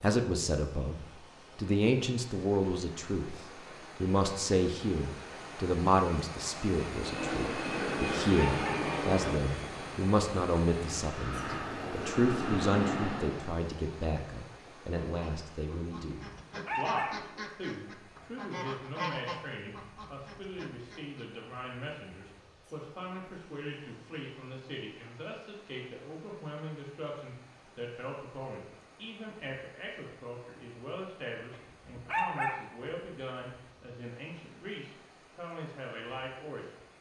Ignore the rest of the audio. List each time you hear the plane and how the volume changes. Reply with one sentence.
You can hear the plane from 6.9 to 13.6 s, getting quieter then louder.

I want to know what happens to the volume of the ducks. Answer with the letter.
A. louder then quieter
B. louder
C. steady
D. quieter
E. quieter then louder
A.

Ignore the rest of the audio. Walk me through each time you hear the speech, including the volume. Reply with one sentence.
The speech can be heard briefly from 0.0 to 0.9 s; and from 1.6 to 36.7 s, getting quieter.